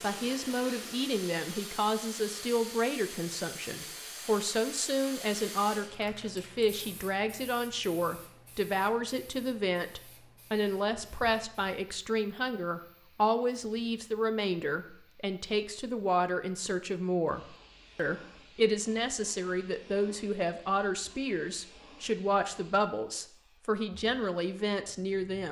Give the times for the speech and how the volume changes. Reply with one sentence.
You can hear the speech from 0.0 to 25.4 s, at a steady volume.